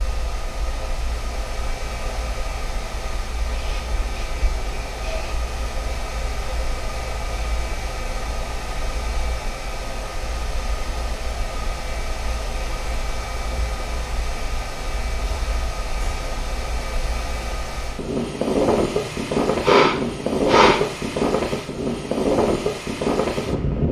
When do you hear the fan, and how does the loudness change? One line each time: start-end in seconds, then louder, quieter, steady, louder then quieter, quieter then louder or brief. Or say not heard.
0.0-23.8 louder.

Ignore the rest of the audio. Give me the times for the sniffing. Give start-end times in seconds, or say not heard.
3.5-5.4, 19.1-20.8.